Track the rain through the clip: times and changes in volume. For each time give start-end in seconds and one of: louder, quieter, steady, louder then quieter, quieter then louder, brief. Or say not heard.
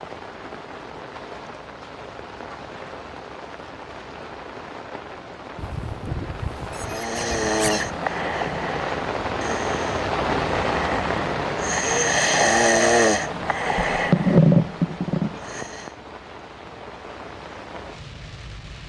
0.0-18.8 louder then quieter.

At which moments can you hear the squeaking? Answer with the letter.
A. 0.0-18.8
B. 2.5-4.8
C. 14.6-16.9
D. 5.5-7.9
D.